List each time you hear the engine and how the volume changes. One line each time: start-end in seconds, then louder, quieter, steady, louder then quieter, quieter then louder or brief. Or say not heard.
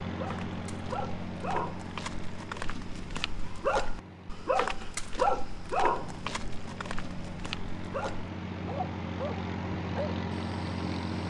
0.0-11.2 quieter then louder.